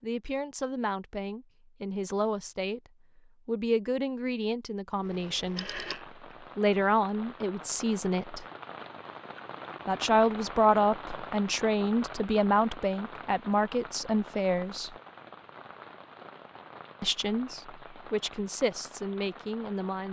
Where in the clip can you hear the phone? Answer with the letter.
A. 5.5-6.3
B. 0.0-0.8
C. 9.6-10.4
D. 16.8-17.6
A.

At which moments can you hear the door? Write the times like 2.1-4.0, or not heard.
not heard.